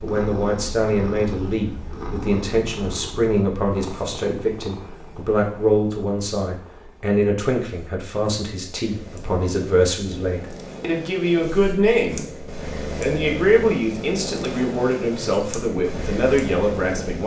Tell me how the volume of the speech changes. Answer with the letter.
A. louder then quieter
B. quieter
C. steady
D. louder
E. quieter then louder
C.